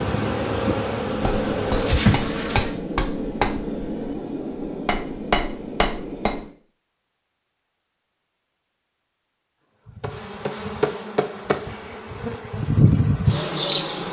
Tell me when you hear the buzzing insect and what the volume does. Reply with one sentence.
You can hear the buzzing insect briefly from 0.0 to 2.8 s; and from 9.8 to 14.0 s, getting quieter then louder.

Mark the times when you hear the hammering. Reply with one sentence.
You can hear the hammering from 1.1 to 6.5 s.